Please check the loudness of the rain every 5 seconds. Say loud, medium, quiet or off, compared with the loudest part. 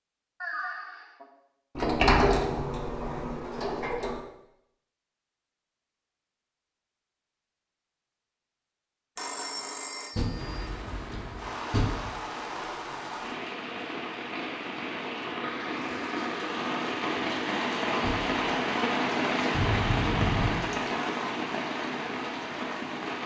off, off, medium, loud, loud.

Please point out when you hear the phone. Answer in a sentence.
You can hear the phone from 0.4 to 1.2 s, from 9.2 to 10.5 s and from 19.5 to 20.6 s.